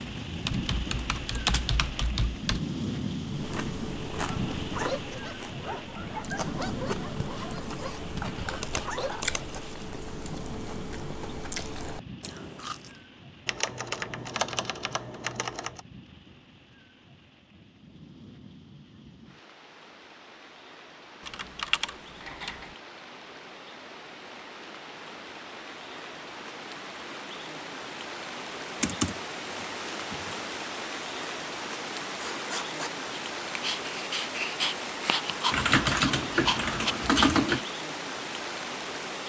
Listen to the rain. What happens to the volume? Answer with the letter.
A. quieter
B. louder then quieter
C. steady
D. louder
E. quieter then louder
E.